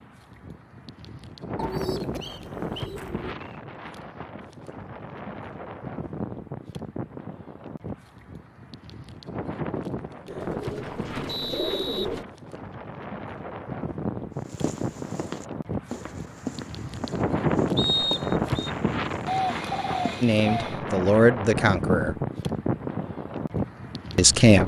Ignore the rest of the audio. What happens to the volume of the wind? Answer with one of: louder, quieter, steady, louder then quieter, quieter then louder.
louder.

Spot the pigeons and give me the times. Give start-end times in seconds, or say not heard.
1.6-3.4, 10.2-12.2, 19.2-20.8.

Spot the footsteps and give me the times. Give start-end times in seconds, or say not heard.
14.4-20.1.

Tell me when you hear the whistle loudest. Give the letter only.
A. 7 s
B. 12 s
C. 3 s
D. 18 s
D.